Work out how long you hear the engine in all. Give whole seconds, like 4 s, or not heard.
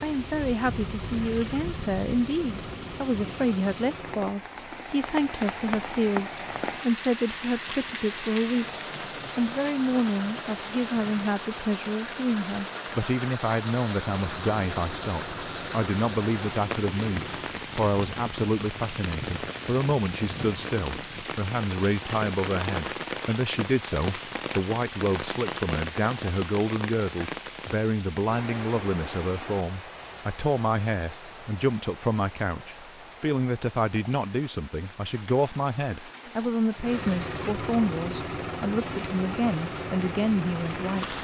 12 s.